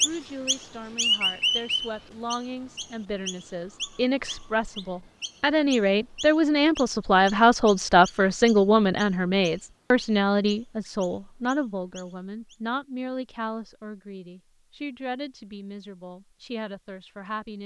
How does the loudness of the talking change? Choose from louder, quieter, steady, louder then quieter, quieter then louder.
louder then quieter.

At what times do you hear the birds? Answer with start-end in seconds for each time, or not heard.
0.0-12.6.